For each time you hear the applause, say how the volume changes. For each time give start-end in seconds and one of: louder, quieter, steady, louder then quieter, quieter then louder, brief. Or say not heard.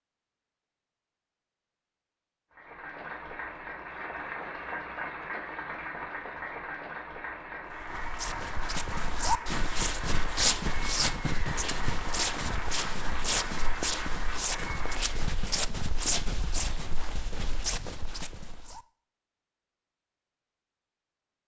2.5-15.3 steady.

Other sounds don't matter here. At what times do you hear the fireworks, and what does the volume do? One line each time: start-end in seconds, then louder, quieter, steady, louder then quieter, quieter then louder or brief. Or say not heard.
not heard.